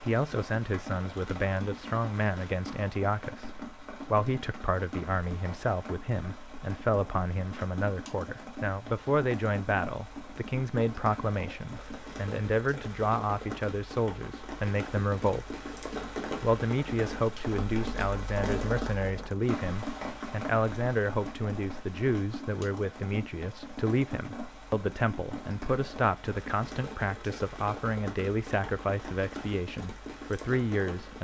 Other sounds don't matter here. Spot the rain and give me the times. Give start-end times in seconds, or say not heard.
0.0-31.1.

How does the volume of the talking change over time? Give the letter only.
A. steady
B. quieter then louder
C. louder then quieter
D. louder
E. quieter
A.